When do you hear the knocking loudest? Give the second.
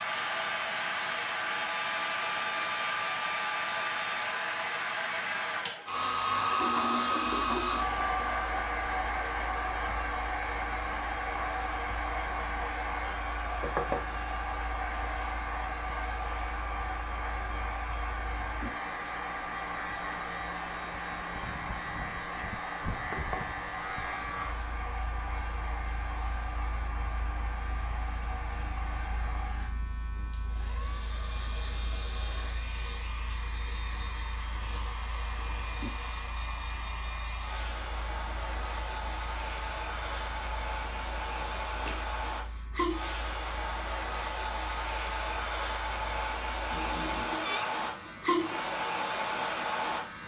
14 s.